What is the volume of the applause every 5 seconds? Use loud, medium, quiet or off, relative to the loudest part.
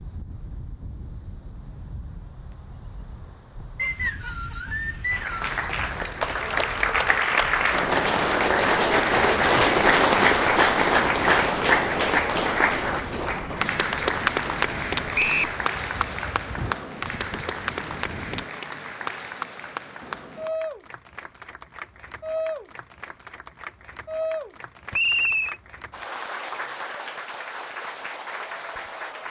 off, loud, loud, medium, quiet, quiet.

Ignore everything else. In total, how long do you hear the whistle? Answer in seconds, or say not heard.
3 s.